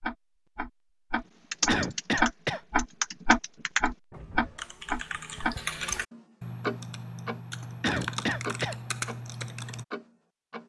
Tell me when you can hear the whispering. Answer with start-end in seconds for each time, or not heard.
not heard.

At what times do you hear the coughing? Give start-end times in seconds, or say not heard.
1.6-2.6, 7.8-8.8.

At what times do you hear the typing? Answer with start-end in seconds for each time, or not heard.
1.5-9.8.